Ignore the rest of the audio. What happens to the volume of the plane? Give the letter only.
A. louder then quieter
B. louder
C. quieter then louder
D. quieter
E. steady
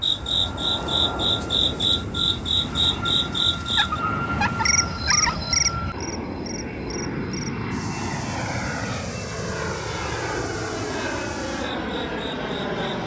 E.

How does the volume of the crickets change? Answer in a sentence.
The loudness of the crickets goes down.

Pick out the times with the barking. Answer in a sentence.
You can hear the barking from 3.8 to 5.4 s.